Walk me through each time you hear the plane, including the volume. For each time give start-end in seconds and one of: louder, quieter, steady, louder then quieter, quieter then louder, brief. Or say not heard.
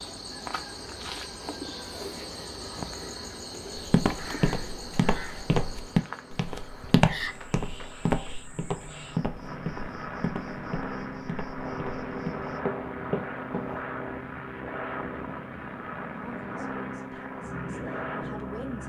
0.0-18.8 louder.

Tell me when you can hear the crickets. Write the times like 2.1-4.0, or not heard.
0.0-12.7.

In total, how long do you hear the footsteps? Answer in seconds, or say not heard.
10 s.